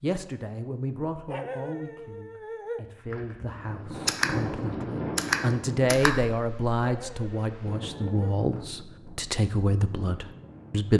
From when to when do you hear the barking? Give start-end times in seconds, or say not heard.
1.2-2.9, 6.8-8.4.